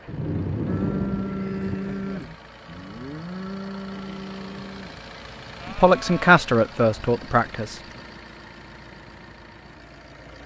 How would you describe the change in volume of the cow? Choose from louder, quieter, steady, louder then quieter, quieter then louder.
quieter.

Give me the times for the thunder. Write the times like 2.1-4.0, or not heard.
0.1-1.8.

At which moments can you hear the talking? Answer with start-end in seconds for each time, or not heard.
5.7-7.8.